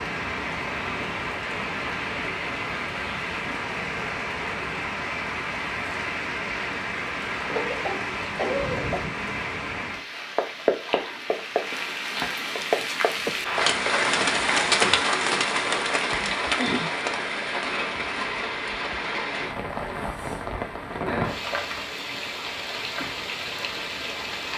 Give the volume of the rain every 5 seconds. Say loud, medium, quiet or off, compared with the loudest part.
medium, medium, loud, loud, medium.